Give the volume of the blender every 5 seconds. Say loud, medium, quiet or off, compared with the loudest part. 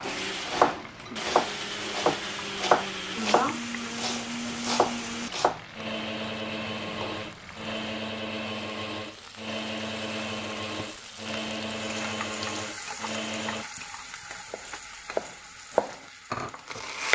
loud, loud, loud, off.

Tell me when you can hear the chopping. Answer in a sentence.
The chopping can be heard from 0.0 to 5.6 s and from 14.5 to 17.1 s.